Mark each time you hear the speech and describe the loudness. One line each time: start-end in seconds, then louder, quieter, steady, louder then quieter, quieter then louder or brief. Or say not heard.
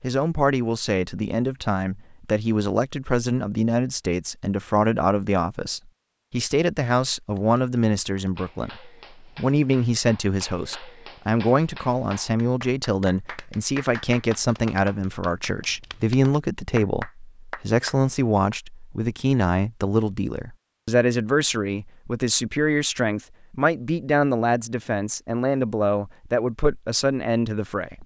0.0-28.0 steady.